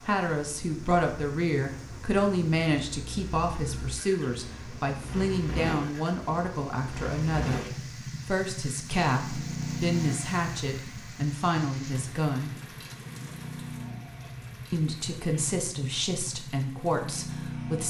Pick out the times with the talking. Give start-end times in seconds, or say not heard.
0.1-12.6, 14.7-17.8.